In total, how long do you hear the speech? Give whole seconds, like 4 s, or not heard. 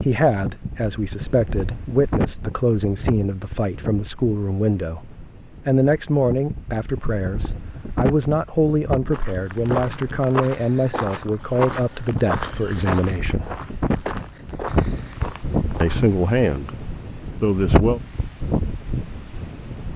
16 s.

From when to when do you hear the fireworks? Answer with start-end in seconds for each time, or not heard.
not heard.